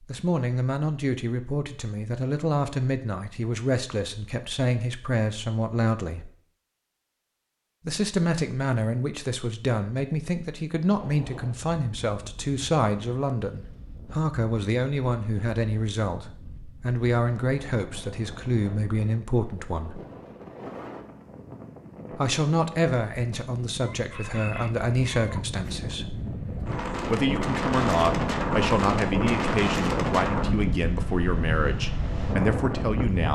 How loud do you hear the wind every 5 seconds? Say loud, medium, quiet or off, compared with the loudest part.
off, off, quiet, quiet, quiet, loud, loud.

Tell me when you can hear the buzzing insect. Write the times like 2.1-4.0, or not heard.
not heard.